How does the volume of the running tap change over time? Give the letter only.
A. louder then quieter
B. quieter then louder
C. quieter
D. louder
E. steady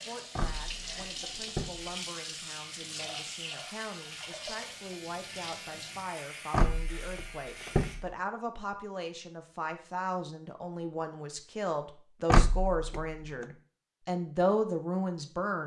C.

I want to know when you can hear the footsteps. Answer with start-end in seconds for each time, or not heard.
not heard.